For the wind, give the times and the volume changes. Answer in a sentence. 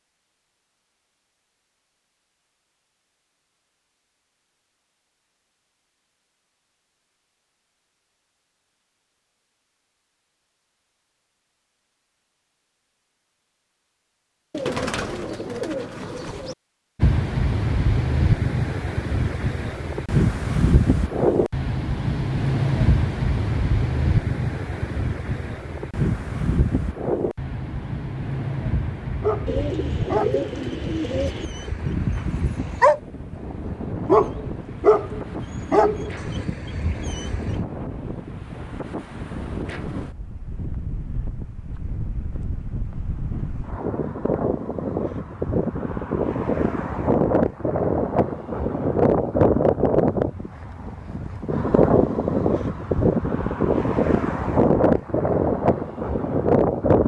You can hear the wind from 16.9 to 57.0 s, getting quieter then louder.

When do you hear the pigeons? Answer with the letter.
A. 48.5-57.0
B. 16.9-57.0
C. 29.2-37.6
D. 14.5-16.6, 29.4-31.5
D.